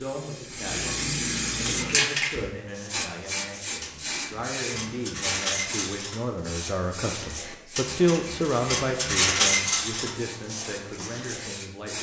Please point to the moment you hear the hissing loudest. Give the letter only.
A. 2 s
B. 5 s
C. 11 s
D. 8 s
A.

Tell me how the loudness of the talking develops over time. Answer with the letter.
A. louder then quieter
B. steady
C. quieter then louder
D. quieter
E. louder
A.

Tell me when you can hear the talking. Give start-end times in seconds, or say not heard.
0.0-11.9.